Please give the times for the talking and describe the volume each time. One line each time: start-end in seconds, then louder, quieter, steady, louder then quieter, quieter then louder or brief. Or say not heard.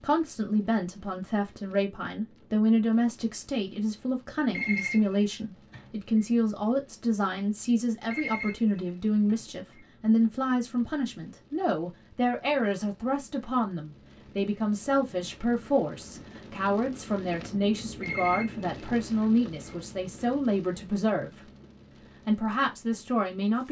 0.0-21.5 steady
22.2-23.6 brief.